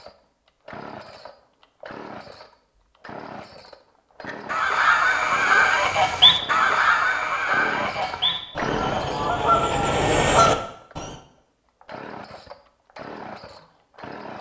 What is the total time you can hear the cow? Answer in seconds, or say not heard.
not heard.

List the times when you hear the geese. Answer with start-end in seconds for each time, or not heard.
4.2-11.2.